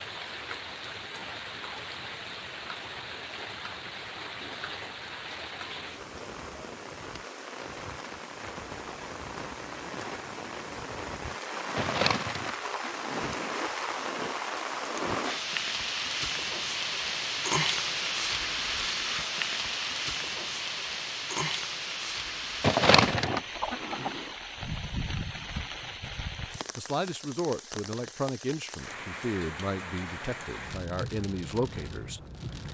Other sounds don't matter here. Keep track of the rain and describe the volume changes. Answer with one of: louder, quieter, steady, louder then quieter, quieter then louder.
louder then quieter.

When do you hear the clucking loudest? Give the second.
23 s.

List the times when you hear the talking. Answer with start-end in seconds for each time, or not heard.
26.8-32.2.